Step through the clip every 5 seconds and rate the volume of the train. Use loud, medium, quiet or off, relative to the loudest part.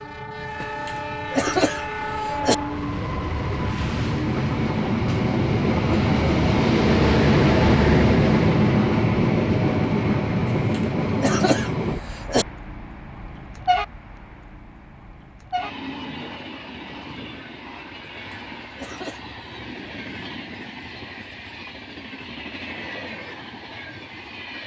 medium, loud, medium, quiet, quiet.